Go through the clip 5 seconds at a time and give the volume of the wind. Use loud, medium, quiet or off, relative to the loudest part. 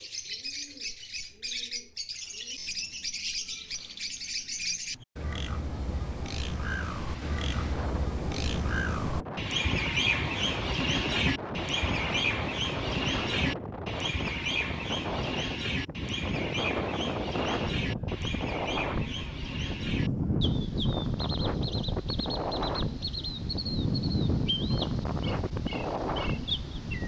off, medium, medium, loud, loud, loud.